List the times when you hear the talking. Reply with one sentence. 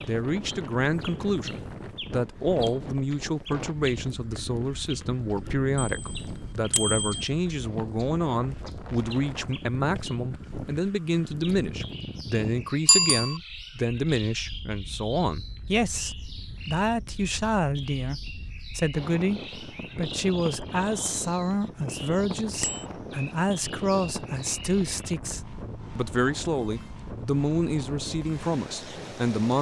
You can hear the talking from 0.1 to 29.5 s.